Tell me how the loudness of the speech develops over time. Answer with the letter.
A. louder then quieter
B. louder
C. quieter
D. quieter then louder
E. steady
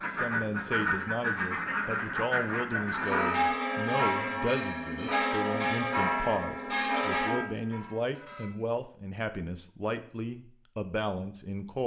E.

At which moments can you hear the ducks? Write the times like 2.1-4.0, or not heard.
0.0-3.4.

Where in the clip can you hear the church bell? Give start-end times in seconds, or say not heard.
3.0-8.5.